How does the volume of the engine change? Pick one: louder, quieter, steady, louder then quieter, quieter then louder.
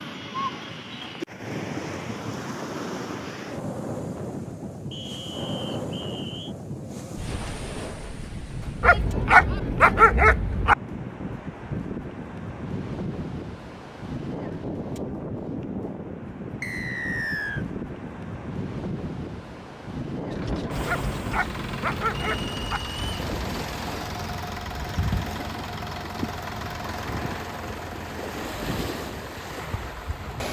quieter.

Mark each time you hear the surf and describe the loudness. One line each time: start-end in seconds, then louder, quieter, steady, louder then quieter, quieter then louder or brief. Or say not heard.
0.0-30.4 steady.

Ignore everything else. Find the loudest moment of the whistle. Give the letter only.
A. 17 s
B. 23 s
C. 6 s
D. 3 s
A.